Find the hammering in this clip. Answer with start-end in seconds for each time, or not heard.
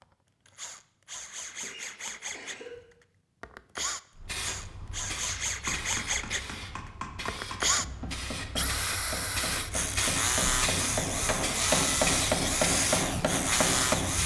5.0-14.2.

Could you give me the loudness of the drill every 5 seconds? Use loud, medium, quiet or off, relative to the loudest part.
medium, loud, loud.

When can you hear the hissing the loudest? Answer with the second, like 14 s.
12 s.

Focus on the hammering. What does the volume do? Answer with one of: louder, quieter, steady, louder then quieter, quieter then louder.
louder.